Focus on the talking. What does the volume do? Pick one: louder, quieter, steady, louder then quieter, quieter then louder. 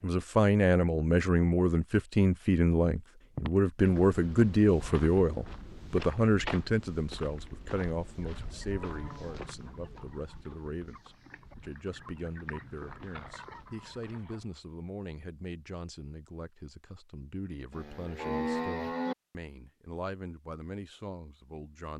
quieter.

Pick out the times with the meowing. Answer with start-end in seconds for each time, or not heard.
not heard.